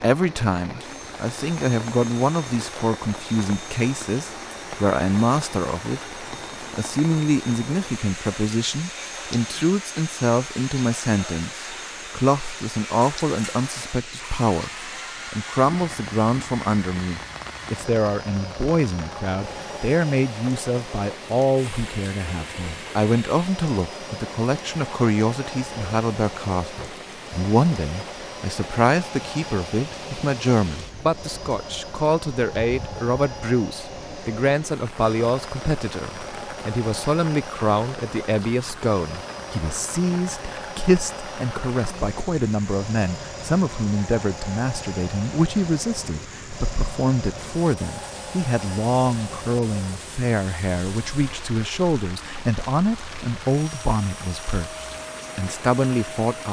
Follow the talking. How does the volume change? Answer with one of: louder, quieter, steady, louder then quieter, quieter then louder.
steady.